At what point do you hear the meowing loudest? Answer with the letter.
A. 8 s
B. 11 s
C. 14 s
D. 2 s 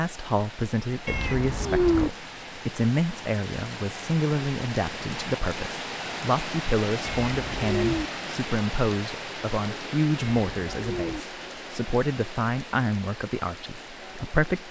D.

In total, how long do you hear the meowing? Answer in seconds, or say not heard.
3 s.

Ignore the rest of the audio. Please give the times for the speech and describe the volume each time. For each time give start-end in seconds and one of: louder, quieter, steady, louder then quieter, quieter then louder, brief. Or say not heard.
0.0-14.6 steady.